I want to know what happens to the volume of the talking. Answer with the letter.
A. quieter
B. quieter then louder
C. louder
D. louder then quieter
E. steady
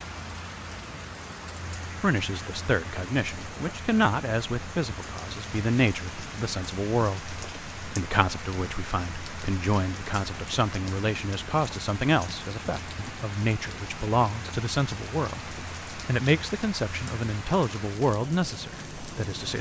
E.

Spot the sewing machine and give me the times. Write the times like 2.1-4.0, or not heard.
not heard.